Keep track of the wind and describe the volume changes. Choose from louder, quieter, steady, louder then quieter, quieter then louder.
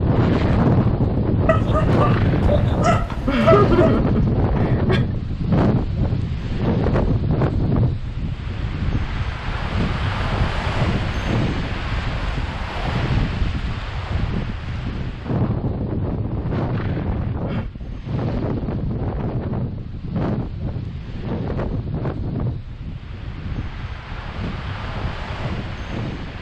quieter.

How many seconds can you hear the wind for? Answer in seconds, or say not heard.
26 s.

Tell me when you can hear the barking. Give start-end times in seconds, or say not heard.
1.4-4.0.